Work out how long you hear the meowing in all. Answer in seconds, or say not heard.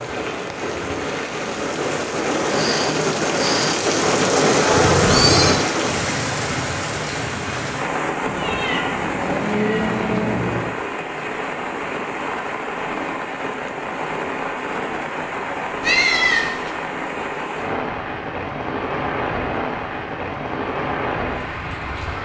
4 s.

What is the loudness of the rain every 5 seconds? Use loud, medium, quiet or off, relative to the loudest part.
loud, loud, medium, medium, medium.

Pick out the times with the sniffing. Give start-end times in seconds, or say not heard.
2.5-3.8.